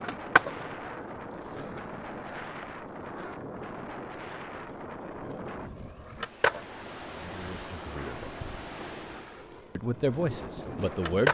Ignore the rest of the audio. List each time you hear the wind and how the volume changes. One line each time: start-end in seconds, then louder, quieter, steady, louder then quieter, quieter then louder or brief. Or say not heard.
0.0-11.2 steady.